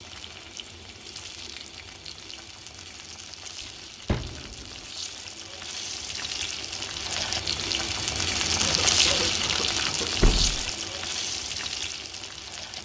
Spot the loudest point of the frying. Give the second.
9 s.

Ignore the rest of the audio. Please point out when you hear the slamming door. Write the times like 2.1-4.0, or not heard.
4.0-4.7, 10.2-10.7.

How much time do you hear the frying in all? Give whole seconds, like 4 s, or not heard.
13 s.